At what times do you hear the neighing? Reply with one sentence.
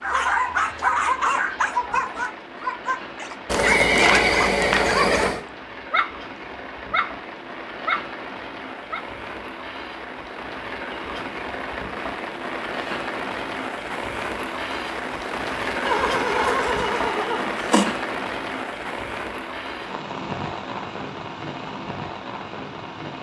The neighing can be heard from 3.5 to 5.5 s and from 15.8 to 17.9 s.